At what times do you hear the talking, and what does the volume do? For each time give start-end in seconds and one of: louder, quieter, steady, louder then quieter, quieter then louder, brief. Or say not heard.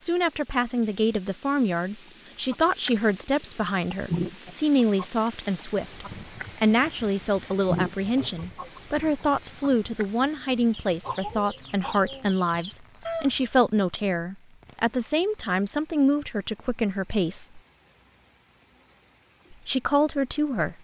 0.0-17.6 steady
19.5-20.7 brief.